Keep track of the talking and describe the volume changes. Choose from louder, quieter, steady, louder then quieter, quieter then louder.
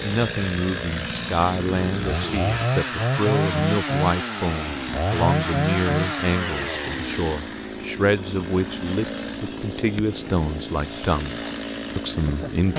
steady.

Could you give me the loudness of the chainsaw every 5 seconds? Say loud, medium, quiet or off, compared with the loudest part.
loud, loud, medium.